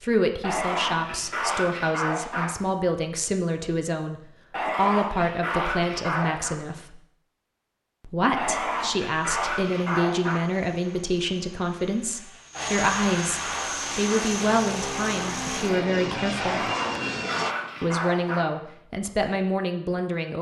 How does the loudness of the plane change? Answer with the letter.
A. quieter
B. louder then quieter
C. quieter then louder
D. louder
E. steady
D.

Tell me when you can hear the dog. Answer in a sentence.
You can hear the dog from 0.4 to 2.5 s, from 4.5 to 6.5 s, from 8.3 to 10.4 s, from 12.5 to 14.3 s and from 16.4 to 18.4 s.